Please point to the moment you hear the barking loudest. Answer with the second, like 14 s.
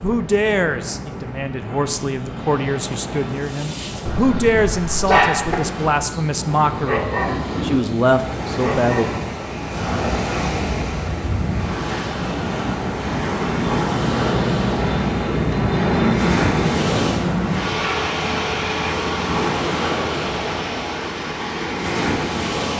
5 s.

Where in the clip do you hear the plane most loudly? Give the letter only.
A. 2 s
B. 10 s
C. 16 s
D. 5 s
C.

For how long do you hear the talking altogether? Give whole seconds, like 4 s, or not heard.
9 s.